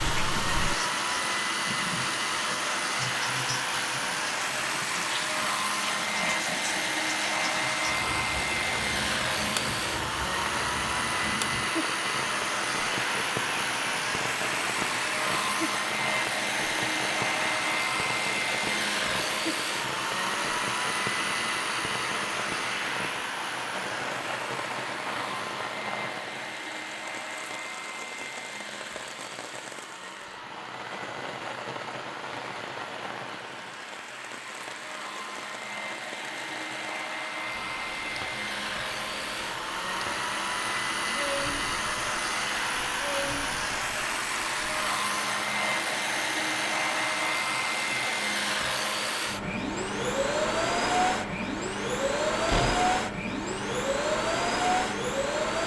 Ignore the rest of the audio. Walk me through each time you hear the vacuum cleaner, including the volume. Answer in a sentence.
The vacuum cleaner can be heard from 0.0 to 55.6 s, getting quieter then louder.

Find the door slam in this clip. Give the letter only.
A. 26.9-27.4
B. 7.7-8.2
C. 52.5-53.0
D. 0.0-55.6
C.